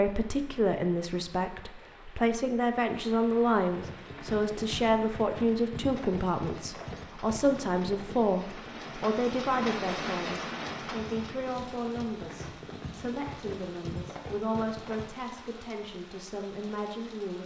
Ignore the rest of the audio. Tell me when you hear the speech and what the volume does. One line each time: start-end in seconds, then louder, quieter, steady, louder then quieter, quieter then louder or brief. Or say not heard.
0.0-17.4 quieter.